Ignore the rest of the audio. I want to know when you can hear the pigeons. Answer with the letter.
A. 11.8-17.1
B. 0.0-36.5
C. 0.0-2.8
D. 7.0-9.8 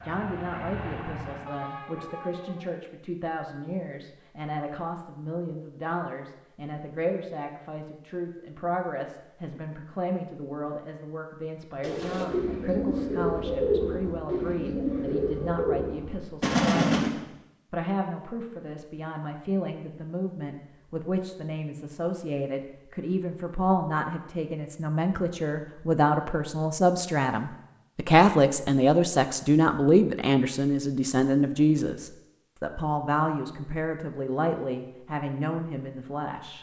A.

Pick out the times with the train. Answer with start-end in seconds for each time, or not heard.
0.0-2.8.